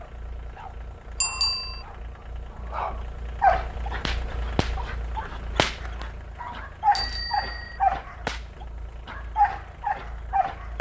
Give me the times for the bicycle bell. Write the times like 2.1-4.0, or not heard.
1.2-1.8, 7.0-7.8.